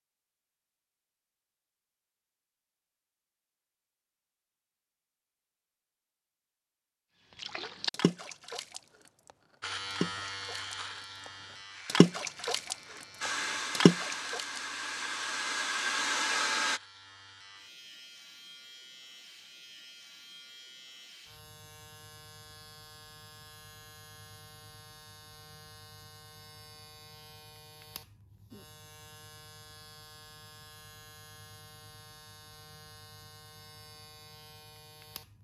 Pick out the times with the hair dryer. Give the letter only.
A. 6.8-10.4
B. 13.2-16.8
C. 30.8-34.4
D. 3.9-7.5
B.